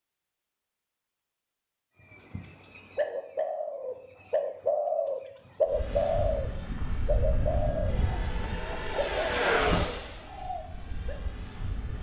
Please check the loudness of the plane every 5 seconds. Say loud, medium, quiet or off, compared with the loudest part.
off, loud, quiet.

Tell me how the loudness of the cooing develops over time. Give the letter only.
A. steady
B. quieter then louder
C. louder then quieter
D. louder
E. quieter
C.